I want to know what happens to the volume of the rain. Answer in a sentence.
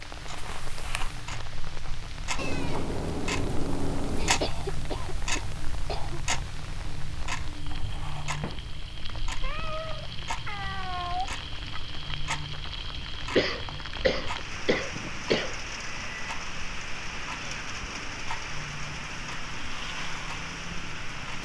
The volume of the rain goes up.